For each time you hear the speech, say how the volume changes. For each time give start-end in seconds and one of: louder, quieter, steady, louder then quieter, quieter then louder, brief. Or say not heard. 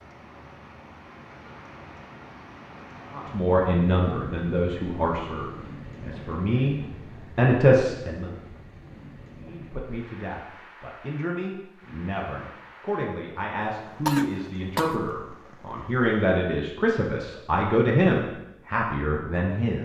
3.1-8.3 quieter then louder
9.3-19.8 louder.